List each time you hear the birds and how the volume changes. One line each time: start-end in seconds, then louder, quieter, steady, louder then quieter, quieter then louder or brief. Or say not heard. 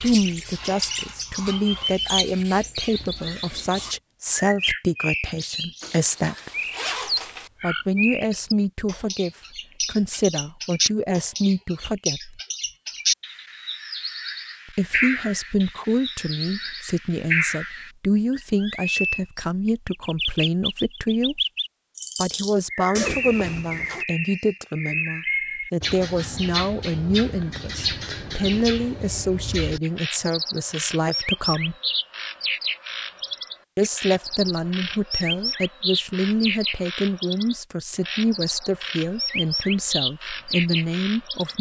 0.0-41.5 steady.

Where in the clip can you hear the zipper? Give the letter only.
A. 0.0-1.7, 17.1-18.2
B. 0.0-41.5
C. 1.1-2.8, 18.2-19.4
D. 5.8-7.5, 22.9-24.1
D.